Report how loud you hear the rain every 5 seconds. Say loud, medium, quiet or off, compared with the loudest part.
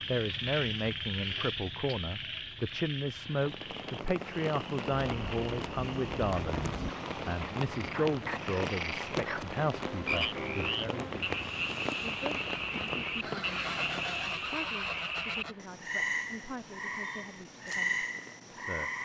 loud, loud, loud, quiet.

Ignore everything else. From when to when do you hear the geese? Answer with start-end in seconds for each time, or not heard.
5.0-6.9, 13.2-15.6.